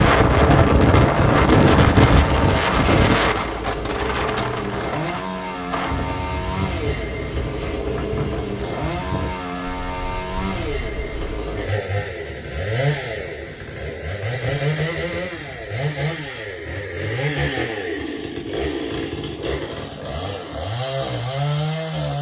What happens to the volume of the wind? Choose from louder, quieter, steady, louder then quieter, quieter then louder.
quieter.